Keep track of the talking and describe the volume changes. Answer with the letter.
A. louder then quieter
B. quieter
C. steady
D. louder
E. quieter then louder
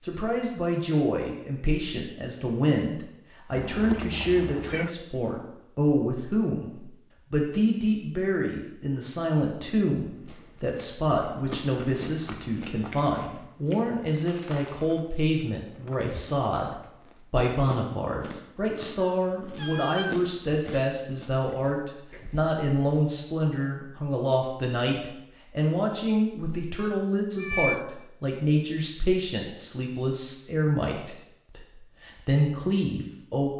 C.